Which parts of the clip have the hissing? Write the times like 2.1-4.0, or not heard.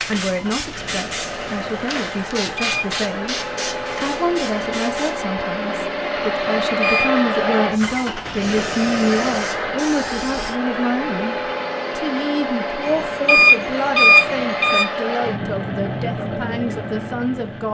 0.0-5.2, 7.7-10.6.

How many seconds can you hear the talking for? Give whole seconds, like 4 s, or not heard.
16 s.